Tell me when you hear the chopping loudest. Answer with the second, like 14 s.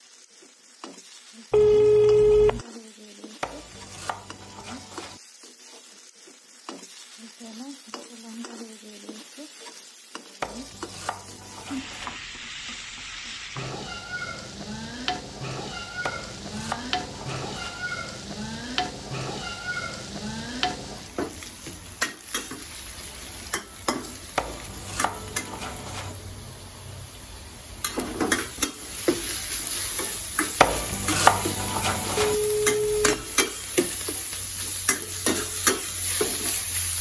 31 s.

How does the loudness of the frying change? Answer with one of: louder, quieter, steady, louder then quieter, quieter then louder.
louder.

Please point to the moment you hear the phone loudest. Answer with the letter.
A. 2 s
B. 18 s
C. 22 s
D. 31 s
A.